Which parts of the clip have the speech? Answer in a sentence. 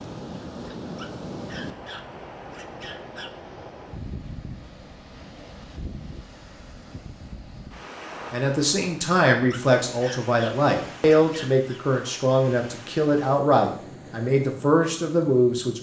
You can hear the speech from 8.3 to 15.7 s.